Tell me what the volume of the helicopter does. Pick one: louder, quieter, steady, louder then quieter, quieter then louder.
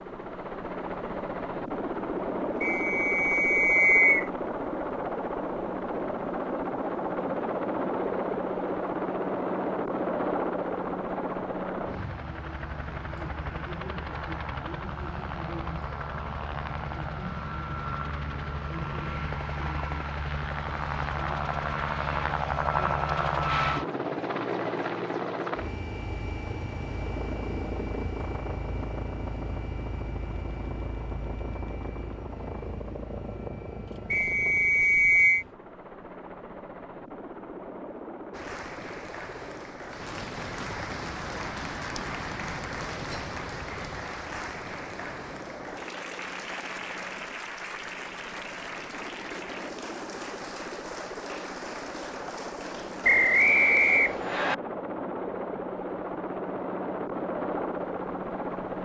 quieter then louder.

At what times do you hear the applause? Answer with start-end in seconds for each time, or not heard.
38.3-54.0.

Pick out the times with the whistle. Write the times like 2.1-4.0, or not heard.
2.6-4.3, 34.1-35.5, 53.0-54.5.